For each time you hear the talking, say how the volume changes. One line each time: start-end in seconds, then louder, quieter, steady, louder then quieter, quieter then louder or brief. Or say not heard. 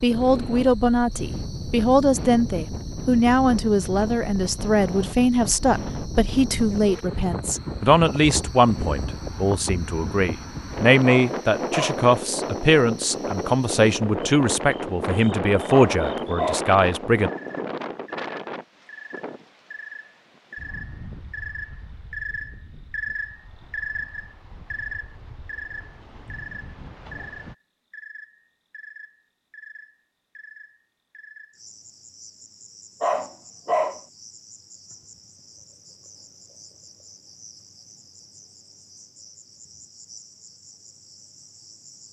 0.0-17.3 steady.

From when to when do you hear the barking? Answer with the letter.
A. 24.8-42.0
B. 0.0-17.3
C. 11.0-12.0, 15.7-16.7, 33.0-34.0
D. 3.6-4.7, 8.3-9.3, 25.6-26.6
C.